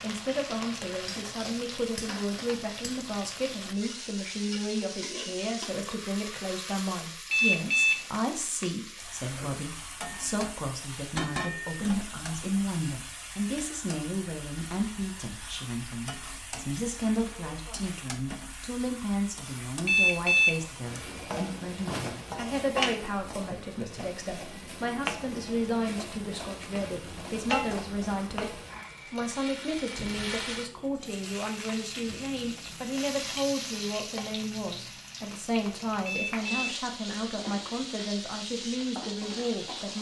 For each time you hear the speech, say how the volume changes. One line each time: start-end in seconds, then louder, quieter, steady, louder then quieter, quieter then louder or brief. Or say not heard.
0.0-39.9 steady.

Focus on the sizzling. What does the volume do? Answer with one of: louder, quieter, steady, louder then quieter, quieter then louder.
steady.